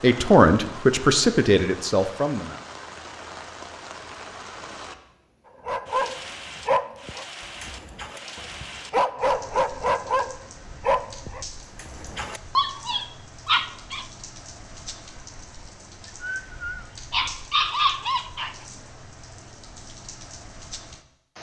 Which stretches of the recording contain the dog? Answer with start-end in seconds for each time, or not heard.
5.7-14.1, 16.2-18.6.